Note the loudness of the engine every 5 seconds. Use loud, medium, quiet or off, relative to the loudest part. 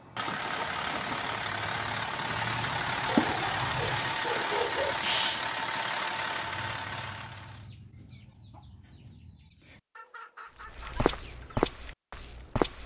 loud, loud, off.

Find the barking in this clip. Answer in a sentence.
The barking can be heard from 3.0 to 5.0 s.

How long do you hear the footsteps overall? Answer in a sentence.
The footsteps can be heard for 2 seconds in total.